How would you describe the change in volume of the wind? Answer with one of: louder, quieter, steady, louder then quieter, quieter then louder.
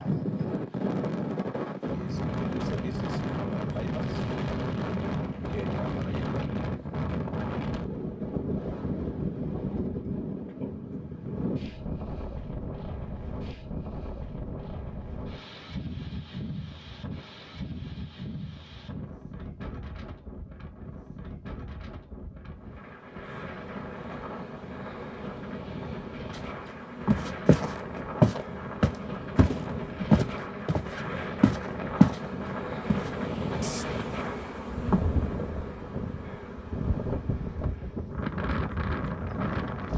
quieter then louder.